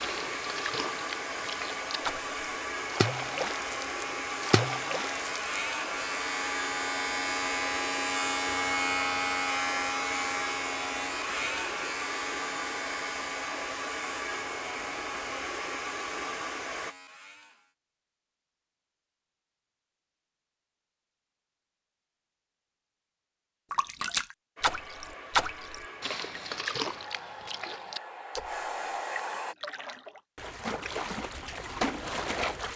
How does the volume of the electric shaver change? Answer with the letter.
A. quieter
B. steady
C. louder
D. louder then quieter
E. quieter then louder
D.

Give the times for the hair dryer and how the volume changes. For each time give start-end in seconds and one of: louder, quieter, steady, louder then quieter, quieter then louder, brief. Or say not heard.
0.0-16.9 steady
24.6-29.6 louder.